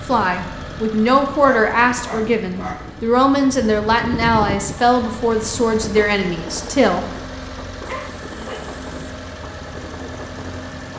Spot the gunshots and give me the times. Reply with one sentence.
The gunshots can't be heard in this clip.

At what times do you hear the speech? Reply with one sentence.
You can hear the speech from 0.1 to 7.0 s.